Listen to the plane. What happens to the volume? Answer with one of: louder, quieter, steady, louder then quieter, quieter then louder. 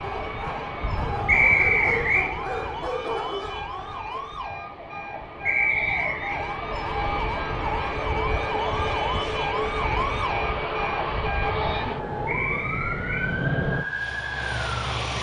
quieter then louder.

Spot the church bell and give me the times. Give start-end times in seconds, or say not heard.
not heard.